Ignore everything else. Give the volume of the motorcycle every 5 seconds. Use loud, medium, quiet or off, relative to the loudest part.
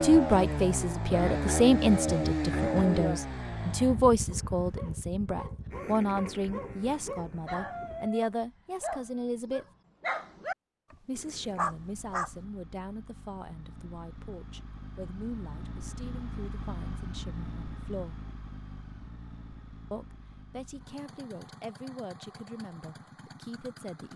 loud, quiet, quiet, quiet, quiet.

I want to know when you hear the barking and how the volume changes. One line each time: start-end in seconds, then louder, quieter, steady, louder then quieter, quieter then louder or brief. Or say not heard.
4.3-12.3 louder.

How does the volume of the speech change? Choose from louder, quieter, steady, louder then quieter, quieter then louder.
quieter.